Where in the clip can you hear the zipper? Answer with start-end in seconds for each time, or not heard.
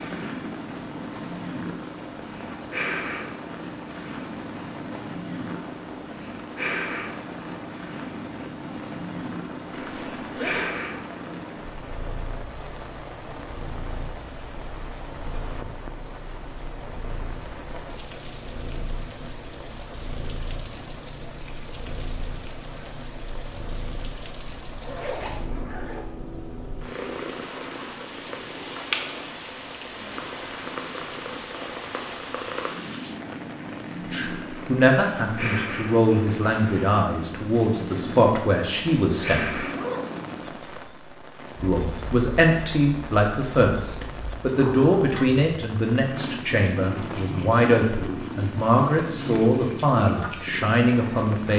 9.7-10.7, 24.7-26.1, 39.5-40.4.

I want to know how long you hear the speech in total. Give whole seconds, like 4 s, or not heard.
15 s.